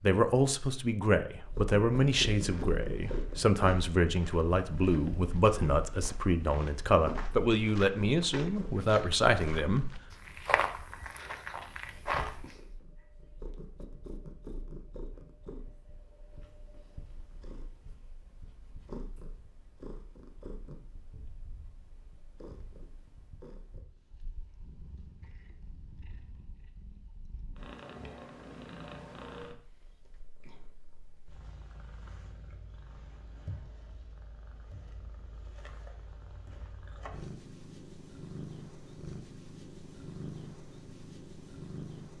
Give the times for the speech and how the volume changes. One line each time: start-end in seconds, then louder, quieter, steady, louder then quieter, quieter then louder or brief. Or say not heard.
0.0-9.9 steady.